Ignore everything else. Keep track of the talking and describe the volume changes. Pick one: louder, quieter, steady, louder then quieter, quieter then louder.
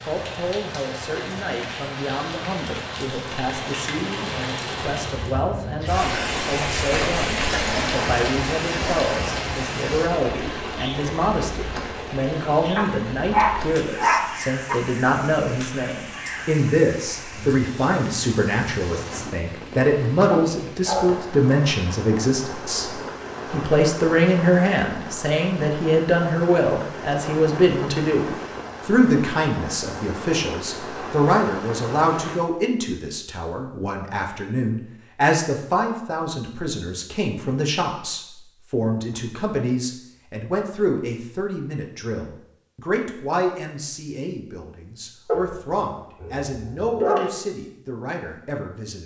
louder then quieter.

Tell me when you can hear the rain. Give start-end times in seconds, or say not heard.
0.0-32.4.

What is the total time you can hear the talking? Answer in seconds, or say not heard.
49 s.